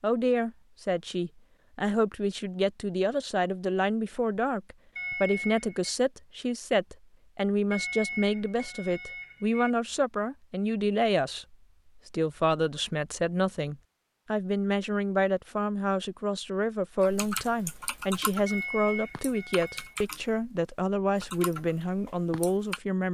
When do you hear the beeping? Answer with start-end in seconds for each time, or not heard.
5.0-6.0, 7.7-9.7, 18.4-19.9.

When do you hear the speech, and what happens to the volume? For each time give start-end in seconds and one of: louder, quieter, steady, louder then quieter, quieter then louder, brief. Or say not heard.
0.0-23.0 steady.